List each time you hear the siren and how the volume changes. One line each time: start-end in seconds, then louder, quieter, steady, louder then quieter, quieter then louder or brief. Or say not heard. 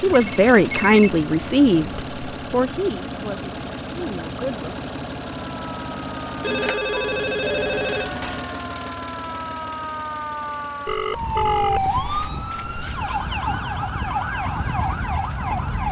5.3-15.8 louder.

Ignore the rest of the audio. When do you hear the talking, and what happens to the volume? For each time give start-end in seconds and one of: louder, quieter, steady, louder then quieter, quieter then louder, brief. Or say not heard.
0.0-4.8 quieter.